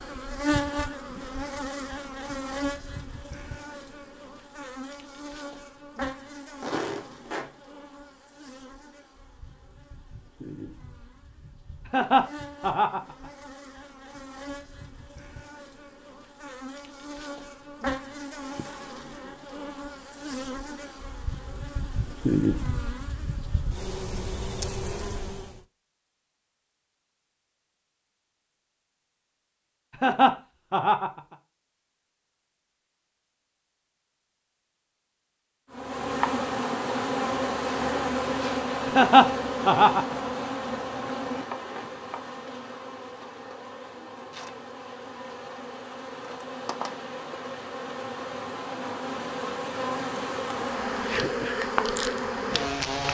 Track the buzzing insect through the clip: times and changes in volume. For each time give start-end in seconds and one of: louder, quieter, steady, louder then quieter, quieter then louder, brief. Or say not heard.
0.0-25.6 quieter then louder
35.7-53.0 quieter then louder.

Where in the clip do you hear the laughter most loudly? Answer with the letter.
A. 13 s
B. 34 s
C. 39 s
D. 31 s
C.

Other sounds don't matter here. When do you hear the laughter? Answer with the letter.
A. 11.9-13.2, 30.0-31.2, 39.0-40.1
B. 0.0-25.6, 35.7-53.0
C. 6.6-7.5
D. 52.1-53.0
A.